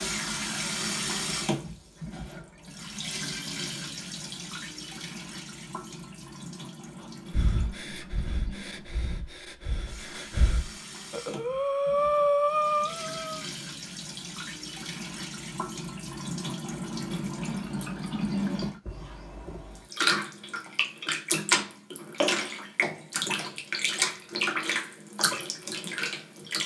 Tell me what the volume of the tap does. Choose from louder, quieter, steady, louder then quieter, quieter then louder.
quieter then louder.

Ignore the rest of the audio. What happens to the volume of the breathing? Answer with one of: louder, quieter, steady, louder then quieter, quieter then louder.
louder.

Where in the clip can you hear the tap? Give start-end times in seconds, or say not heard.
0.0-26.6.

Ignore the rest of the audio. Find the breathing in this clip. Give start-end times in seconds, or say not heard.
7.3-13.4.